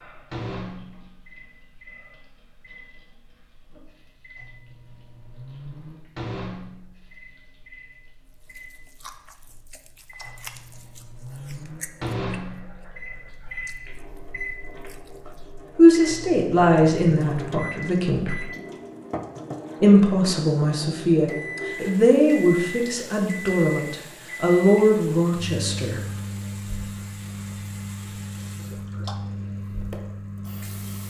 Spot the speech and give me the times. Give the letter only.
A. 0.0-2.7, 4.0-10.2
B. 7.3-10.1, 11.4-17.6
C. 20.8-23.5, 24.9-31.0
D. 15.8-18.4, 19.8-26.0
D.